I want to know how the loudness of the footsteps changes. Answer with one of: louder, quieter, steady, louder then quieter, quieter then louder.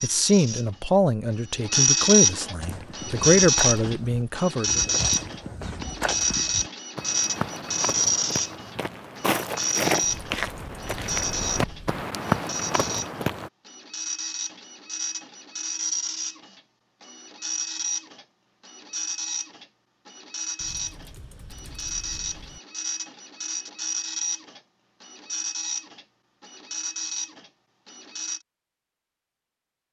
louder.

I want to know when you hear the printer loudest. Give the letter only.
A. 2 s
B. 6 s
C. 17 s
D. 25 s
A.